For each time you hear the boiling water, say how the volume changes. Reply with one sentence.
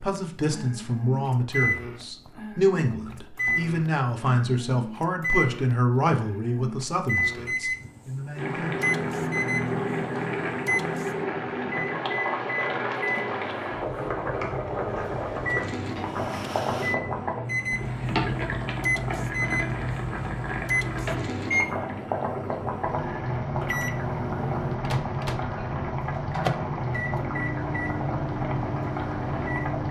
You can hear the boiling water from 8.3 to 29.8 s, at a steady volume.